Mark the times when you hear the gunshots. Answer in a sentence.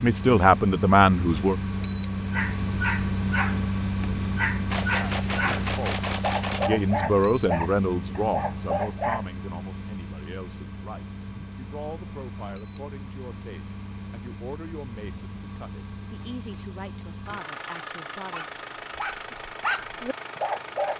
The gunshots can be heard from 4.7 to 6.7 s.